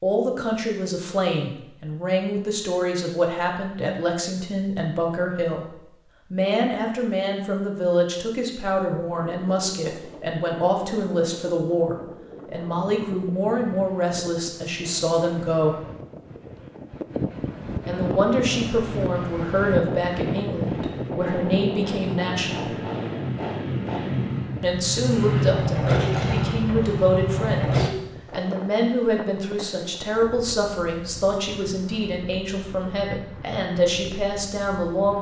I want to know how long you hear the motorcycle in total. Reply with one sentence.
You can hear the motorcycle for 10 seconds altogether.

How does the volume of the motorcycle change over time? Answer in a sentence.
The loudness of the motorcycle goes up.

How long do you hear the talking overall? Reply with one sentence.
The talking can be heard for 31 seconds in total.